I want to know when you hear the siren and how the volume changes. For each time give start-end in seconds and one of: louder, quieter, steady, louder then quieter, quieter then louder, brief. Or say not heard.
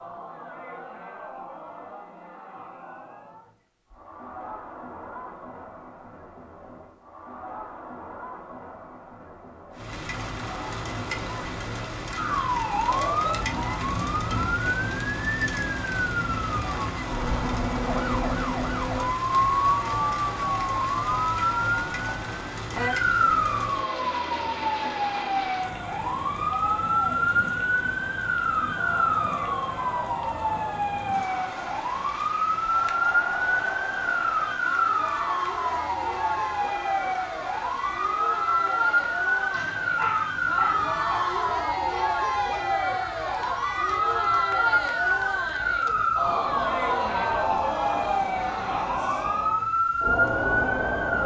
12.2-51.2 steady.